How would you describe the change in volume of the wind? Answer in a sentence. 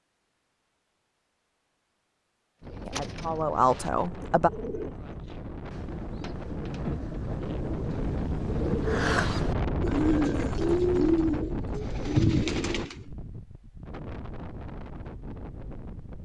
The loudness of the wind goes up, then down.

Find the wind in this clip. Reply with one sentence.
The wind can be heard from 2.6 to 16.2 s.